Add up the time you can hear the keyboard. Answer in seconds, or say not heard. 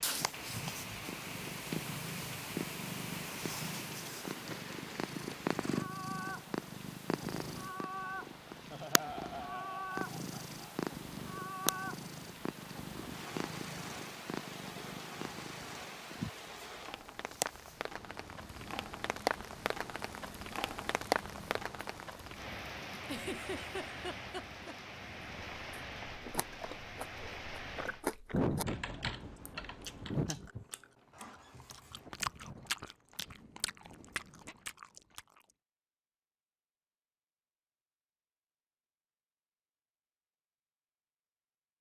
2 s.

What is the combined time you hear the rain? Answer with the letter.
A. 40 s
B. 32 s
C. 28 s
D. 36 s
C.